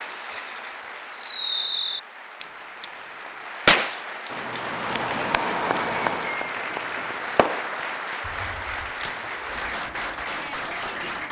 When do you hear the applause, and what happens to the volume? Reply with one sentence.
The applause can be heard from 0.0 to 11.2 s, getting louder.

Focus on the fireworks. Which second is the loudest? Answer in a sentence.
The volume of the fireworks peaks at 4 seconds.